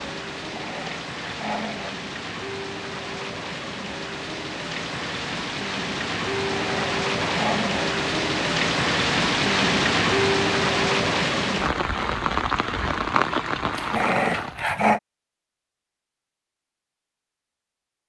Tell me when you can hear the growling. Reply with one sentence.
You can hear the growling from 0.5 to 1.9 s, from 6.5 to 7.9 s and from 13.7 to 15.0 s.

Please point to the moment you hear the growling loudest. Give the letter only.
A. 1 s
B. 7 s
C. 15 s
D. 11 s
C.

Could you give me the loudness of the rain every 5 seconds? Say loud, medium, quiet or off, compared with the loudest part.
medium, loud, loud, off.